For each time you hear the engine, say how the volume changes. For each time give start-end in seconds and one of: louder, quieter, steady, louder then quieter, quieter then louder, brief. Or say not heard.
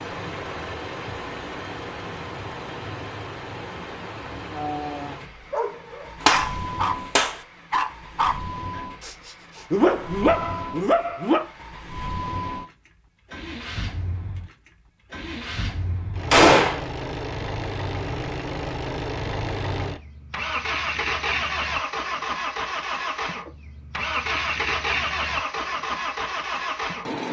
0.0-27.2 louder.